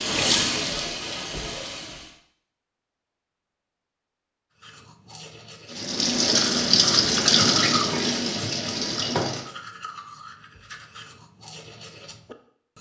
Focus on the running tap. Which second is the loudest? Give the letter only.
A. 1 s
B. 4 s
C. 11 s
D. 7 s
D.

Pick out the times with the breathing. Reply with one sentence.
You can't hear the breathing here.